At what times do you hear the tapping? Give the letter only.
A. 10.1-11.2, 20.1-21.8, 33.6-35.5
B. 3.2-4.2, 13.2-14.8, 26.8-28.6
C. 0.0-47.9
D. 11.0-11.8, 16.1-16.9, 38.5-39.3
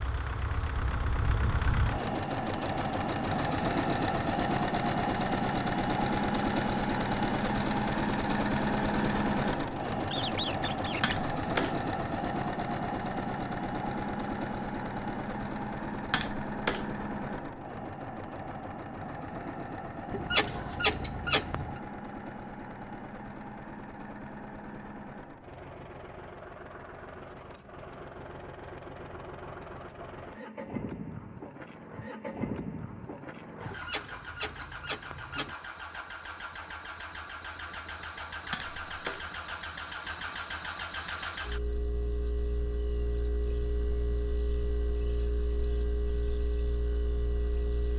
D.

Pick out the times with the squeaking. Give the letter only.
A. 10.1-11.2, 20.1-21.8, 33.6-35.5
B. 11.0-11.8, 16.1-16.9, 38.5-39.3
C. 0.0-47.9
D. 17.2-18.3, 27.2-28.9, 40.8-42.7
A.